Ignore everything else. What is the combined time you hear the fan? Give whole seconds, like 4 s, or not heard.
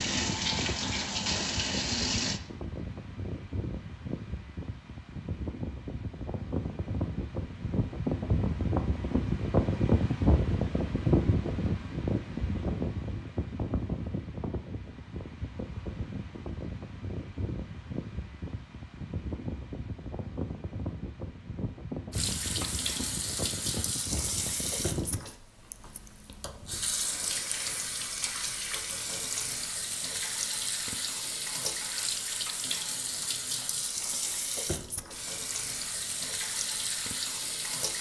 25 s.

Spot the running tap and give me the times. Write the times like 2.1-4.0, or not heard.
0.0-2.4, 22.1-37.9.